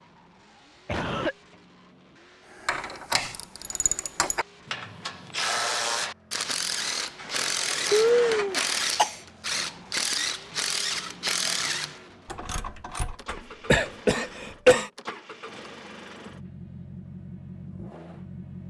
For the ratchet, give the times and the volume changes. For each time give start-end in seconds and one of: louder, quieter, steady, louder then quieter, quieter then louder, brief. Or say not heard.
2.5-13.2 steady.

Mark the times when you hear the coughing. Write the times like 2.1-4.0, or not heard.
0.8-1.4, 7.9-9.2, 13.2-14.9.